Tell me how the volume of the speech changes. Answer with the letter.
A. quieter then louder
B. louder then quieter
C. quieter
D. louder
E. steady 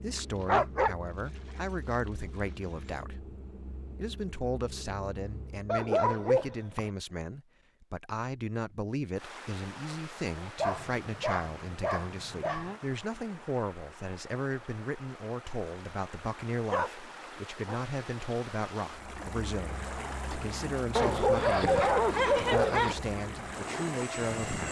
E.